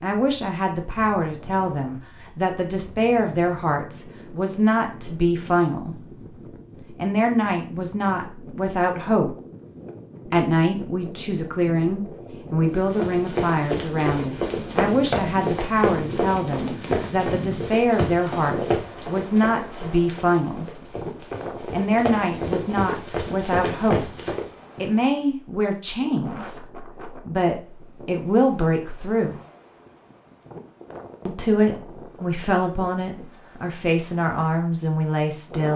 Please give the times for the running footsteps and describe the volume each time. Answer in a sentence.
The running footsteps can be heard from 12.8 to 24.4 s, getting quieter then louder.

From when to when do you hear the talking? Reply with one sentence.
You can hear the talking from 0.0 to 6.2 s, from 6.9 to 9.3 s, from 10.2 to 20.9 s, from 21.6 to 24.1 s, from 24.8 to 29.4 s and from 31.2 to 35.7 s.